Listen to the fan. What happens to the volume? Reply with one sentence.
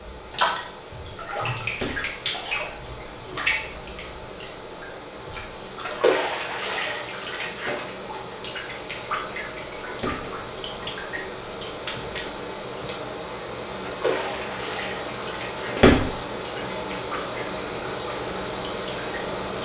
The volume of the fan goes up.